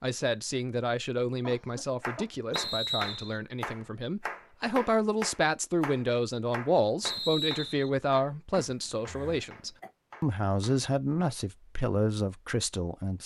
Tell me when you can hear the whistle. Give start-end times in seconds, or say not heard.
2.5-3.4, 7.0-7.9.